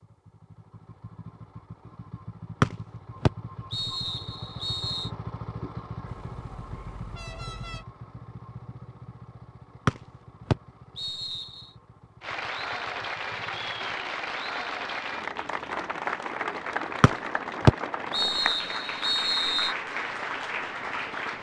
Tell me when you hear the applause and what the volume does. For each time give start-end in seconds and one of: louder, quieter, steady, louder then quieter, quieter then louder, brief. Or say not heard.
12.2-21.3 steady.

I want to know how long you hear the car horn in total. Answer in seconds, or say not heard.
2 s.